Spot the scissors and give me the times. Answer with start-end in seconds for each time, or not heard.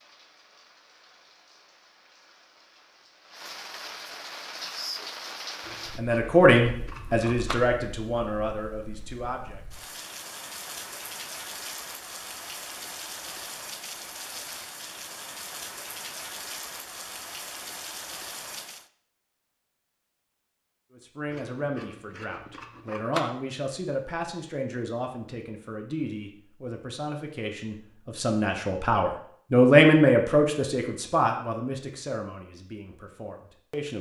5.7-7.5, 21.3-23.2.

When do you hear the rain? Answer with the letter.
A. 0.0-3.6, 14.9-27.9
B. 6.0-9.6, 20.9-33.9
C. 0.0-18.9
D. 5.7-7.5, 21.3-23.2
C.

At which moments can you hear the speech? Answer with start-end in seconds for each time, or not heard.
6.0-9.6, 20.9-33.9.